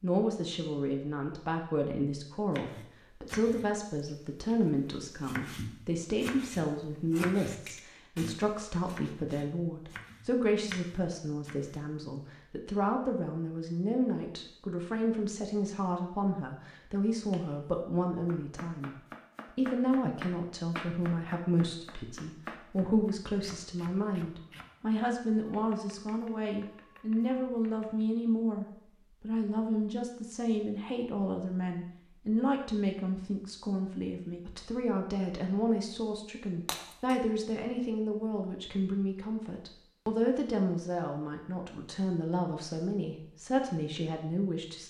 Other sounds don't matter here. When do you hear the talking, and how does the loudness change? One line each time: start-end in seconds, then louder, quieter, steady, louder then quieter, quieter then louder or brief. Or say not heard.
0.0-18.9 steady
19.6-44.8 steady.